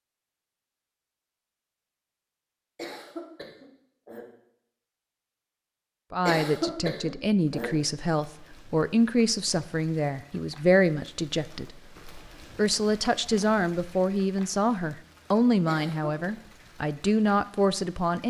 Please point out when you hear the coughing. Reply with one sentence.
You can hear the coughing from 2.8 to 4.2 s, from 6.2 to 7.7 s and from 15.7 to 16.3 s.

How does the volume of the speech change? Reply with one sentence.
The volume of the speech stays about the same.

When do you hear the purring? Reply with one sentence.
The purring can't be heard in this clip.